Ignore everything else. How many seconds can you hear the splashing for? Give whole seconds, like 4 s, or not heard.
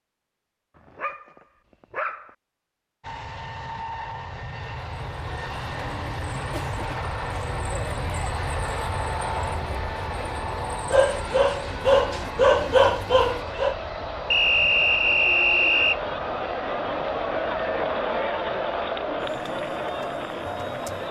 not heard.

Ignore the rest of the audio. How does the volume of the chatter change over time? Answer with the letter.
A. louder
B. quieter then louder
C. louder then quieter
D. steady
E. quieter
A.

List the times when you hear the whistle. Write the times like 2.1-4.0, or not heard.
14.3-16.0.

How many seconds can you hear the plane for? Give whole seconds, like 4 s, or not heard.
18 s.